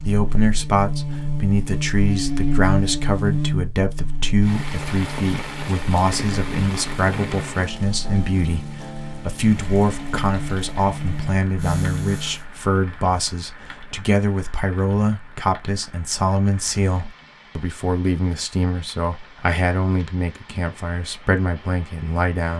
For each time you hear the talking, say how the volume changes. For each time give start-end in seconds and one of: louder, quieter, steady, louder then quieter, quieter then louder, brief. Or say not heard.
0.1-22.5 steady.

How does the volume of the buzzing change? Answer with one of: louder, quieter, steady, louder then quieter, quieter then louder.
quieter then louder.